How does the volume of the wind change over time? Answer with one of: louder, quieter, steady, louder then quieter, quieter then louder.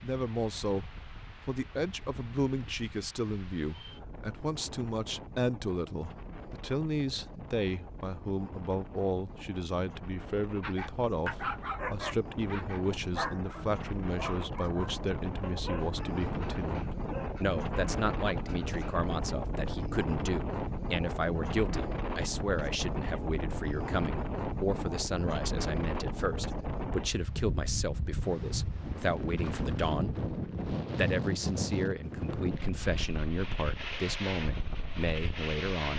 louder.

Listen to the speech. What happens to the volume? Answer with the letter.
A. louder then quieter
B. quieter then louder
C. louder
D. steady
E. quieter
D.